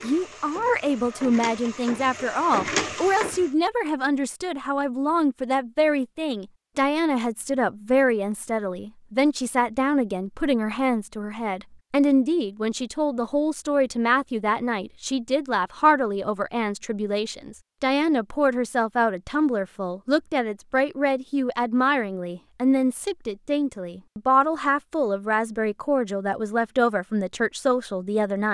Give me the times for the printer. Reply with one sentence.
The printer can be heard from 0.0 to 3.5 s.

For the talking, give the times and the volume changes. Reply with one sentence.
You can hear the talking from 0.0 to 28.4 s, at a steady volume.